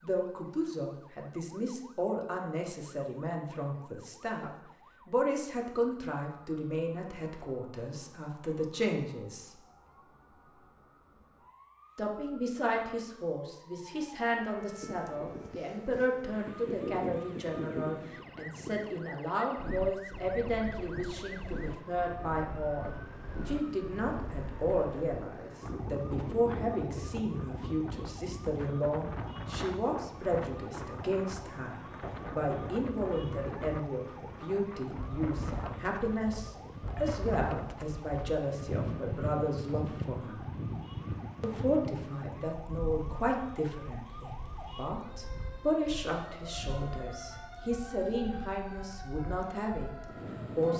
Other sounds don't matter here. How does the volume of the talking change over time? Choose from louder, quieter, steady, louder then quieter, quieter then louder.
steady.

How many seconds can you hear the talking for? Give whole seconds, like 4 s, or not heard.
47 s.